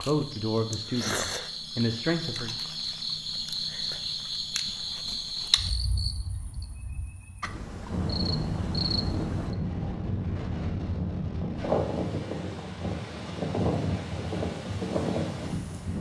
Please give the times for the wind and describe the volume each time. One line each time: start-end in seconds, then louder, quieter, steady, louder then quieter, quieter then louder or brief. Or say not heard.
7.8-15.9 steady.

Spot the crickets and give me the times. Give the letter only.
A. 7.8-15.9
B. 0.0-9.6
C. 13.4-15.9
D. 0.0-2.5
B.